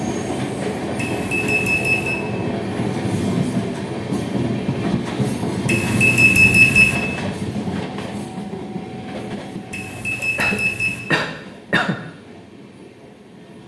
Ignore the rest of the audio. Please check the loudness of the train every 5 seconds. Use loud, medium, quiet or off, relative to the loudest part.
loud, loud, quiet.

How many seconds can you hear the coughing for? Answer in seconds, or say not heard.
2 s.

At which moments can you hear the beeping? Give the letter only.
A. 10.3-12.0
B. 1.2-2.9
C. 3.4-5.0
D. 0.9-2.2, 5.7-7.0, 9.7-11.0
D.